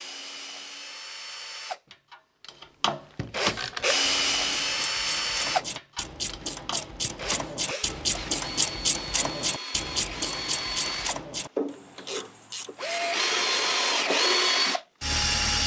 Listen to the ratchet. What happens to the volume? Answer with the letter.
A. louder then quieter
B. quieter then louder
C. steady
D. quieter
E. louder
A.